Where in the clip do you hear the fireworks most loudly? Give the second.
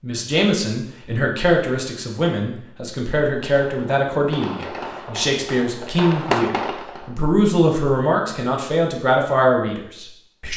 6 s.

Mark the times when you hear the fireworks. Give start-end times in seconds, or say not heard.
3.5-7.2.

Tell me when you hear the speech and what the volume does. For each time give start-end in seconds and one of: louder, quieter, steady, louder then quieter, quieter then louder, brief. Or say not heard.
0.0-10.5 steady.